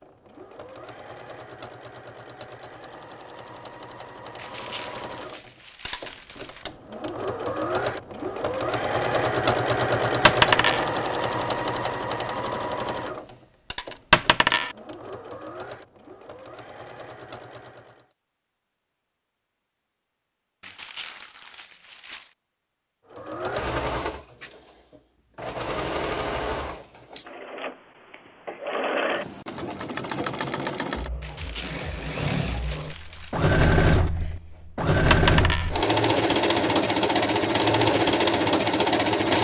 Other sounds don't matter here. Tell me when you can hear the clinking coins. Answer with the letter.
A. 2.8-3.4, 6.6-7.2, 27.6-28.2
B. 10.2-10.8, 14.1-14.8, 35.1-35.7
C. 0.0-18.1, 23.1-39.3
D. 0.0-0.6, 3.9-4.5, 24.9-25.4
B.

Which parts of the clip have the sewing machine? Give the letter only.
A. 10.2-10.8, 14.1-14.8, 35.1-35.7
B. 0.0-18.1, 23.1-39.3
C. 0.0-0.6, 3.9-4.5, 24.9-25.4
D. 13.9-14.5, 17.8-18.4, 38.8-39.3
B.